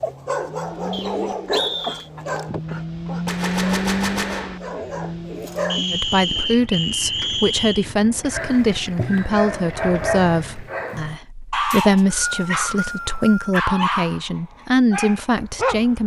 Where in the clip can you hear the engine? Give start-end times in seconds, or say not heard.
0.0-10.8.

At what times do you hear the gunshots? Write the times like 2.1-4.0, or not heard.
3.2-4.6.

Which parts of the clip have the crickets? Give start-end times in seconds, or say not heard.
not heard.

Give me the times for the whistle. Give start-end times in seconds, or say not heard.
0.9-2.1, 5.7-7.8, 11.7-13.6.